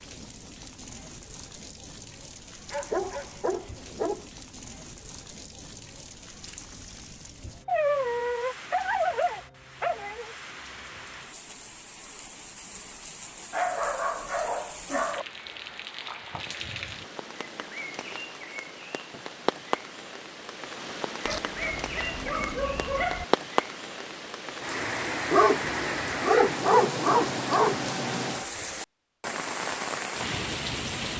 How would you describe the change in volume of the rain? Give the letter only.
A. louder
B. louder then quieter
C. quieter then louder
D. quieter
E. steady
A.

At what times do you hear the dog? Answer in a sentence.
The dog can be heard from 2.7 to 4.2 s, from 7.7 to 10.3 s, from 13.5 to 15.2 s, from 21.2 to 23.2 s and from 25.3 to 27.9 s.